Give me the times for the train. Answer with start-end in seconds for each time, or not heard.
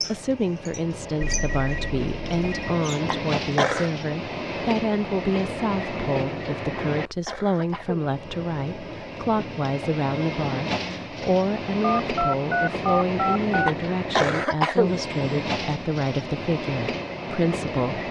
0.0-18.0.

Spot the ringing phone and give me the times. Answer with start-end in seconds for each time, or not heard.
1.2-2.8, 11.8-13.7.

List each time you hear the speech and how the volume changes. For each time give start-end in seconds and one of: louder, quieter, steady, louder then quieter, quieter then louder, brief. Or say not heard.
0.1-18.0 steady.